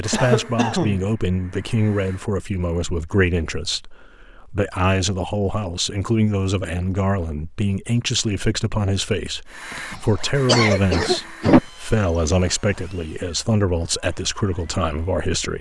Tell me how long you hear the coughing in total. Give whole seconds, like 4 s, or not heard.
3 s.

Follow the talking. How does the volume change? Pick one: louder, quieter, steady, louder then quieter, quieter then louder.
steady.